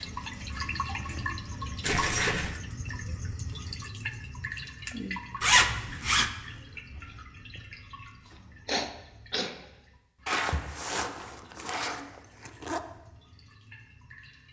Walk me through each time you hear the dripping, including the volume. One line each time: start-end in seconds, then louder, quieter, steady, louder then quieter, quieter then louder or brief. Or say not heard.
0.0-14.4 quieter.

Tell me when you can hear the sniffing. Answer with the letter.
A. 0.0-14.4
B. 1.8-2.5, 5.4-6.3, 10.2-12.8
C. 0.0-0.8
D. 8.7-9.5
D.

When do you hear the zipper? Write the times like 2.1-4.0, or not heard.
1.8-2.5, 5.4-6.3, 10.2-12.8.